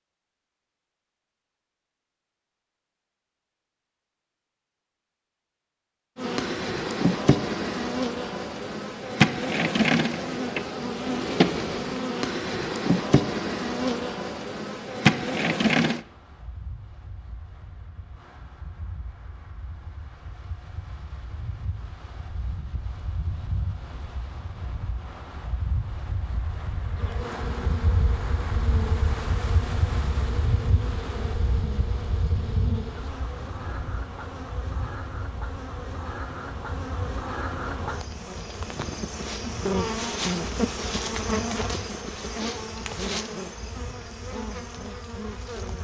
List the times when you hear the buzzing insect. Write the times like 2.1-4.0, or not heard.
6.2-16.0, 26.9-45.7.